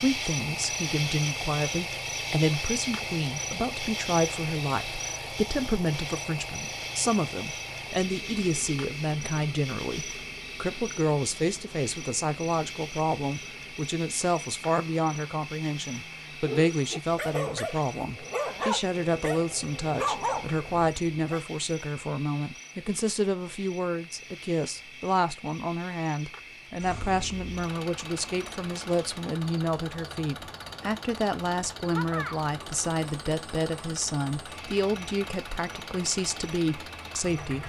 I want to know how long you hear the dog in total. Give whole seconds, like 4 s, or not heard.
5 s.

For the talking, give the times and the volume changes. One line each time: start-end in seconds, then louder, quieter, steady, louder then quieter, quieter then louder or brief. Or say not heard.
0.0-37.6 steady.